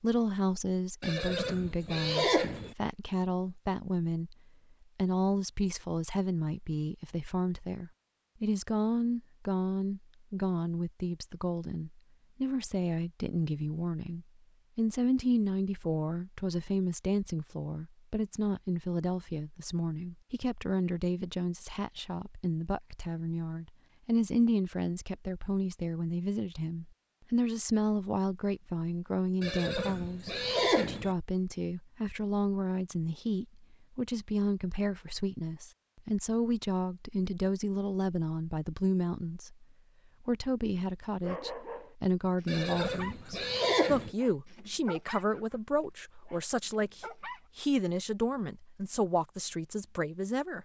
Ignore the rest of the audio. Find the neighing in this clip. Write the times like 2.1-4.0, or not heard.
1.0-2.8, 29.4-31.1, 42.5-44.1.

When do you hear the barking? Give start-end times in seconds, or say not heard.
41.2-43.5, 44.1-45.6, 46.2-47.4.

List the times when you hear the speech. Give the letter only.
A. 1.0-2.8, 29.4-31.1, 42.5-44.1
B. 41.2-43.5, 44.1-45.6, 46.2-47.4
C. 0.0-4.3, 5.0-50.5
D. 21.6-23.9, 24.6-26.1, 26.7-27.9
C.